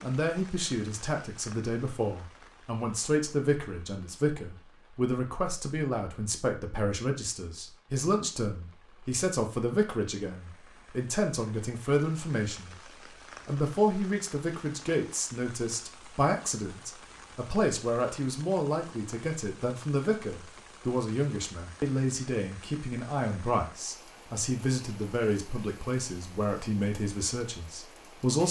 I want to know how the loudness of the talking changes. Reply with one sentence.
The loudness of the talking stays about the same.